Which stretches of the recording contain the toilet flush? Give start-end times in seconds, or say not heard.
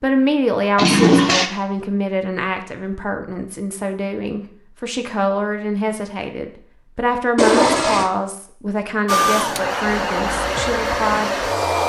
0.8-1.5, 7.3-8.1.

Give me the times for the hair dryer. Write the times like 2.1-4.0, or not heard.
9.1-11.8.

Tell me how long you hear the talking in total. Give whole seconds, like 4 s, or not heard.
11 s.